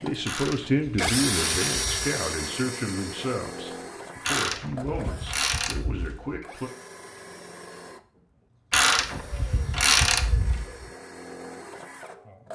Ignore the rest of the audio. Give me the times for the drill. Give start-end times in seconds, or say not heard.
0.0-12.5.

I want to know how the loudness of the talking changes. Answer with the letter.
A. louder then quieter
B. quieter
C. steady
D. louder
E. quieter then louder
B.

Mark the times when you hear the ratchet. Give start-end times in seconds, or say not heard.
0.2-2.1, 4.2-6.4, 8.7-10.8.